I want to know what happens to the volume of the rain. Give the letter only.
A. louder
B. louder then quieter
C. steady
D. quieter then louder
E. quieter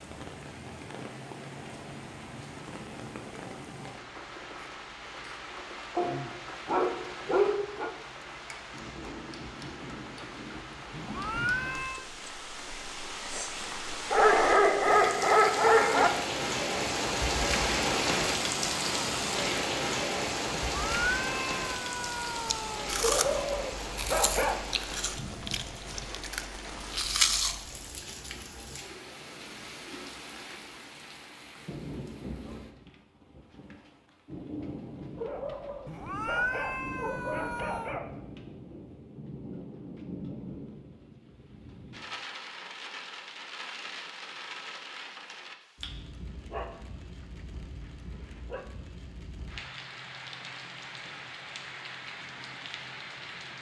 B.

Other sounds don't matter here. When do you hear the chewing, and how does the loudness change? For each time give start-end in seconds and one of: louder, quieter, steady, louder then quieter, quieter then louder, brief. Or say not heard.
22.4-27.9 quieter then louder.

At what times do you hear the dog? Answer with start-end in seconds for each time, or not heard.
6.0-7.9, 14.1-16.1, 23.0-24.6, 35.1-38.1, 46.5-48.6.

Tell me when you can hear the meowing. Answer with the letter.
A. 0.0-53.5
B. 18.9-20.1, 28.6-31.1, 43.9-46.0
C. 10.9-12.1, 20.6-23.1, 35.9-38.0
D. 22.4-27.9
C.